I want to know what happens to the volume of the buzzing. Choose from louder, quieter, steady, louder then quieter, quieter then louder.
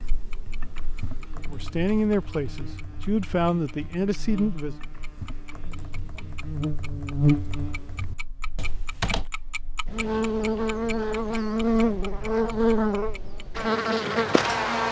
louder.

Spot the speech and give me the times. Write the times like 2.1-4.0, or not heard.
1.4-4.8.